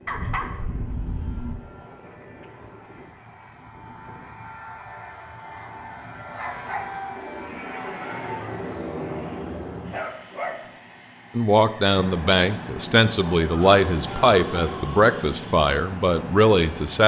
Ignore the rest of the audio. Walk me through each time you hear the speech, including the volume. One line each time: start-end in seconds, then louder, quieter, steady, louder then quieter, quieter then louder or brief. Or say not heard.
11.3-17.0 steady.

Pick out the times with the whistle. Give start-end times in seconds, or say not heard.
not heard.